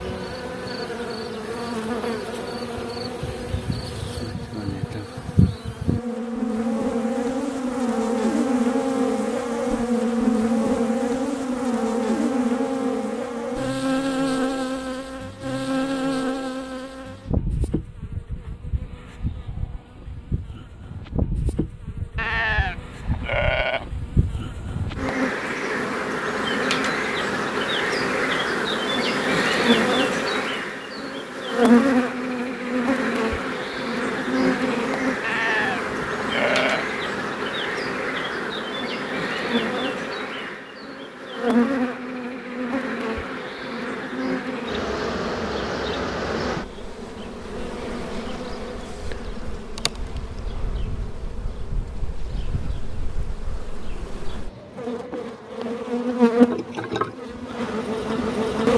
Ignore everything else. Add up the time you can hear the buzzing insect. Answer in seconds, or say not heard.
59 s.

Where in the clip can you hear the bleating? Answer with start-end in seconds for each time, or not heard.
22.1-23.9, 35.2-36.9.